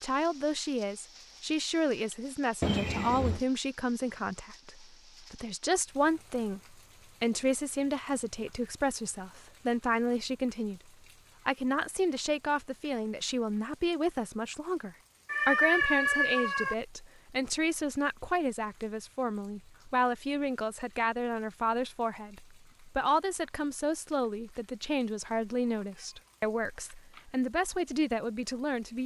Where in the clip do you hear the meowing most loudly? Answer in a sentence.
The volume of the meowing peaks at 16 seconds.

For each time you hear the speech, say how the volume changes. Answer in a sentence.
You can hear the speech from 0.0 to 10.8 s, at a steady volume; and from 11.4 to 29.0 s, at a steady volume.